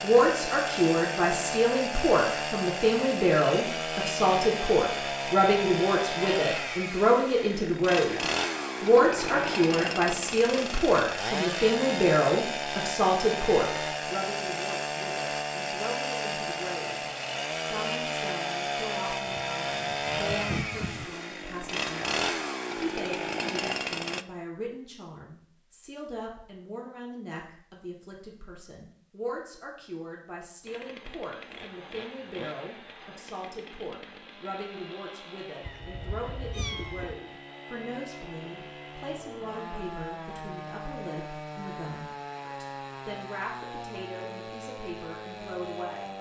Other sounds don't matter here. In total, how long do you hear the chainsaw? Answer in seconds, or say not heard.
40 s.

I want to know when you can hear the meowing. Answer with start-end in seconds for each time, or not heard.
9.1-9.6, 19.2-21.1, 35.6-37.1.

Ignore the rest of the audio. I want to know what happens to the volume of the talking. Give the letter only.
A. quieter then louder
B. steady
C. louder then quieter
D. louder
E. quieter
E.